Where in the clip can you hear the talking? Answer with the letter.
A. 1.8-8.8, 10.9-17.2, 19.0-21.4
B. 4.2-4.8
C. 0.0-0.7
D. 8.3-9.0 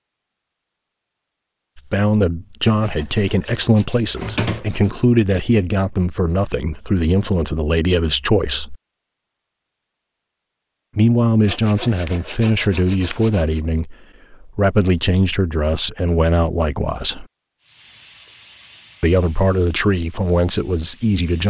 A.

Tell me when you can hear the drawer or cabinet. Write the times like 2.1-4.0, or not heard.
4.2-4.8.